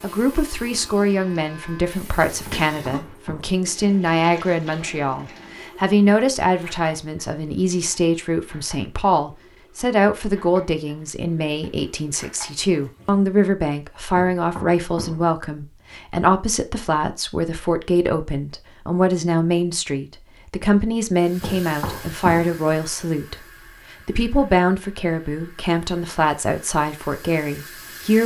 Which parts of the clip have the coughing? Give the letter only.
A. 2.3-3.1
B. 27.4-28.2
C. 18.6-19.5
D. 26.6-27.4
A.